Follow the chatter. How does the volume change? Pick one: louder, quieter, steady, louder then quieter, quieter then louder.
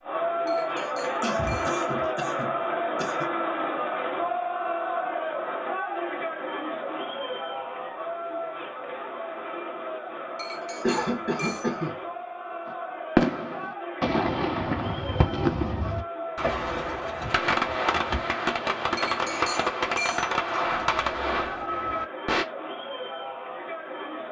quieter.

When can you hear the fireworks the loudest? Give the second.
13 s.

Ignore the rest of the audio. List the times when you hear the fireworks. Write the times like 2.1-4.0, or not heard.
12.7-22.4.